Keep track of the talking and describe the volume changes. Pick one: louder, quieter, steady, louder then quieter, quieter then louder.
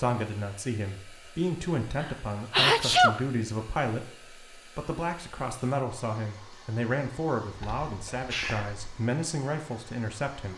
steady.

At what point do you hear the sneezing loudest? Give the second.
3 s.